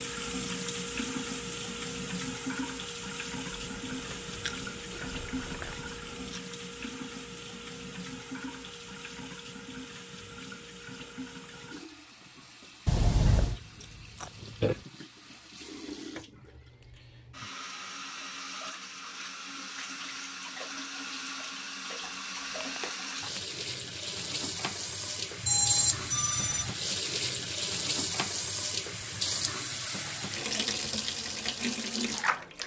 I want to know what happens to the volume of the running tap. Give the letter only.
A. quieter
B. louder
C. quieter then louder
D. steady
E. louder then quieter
C.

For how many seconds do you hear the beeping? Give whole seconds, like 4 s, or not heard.
2 s.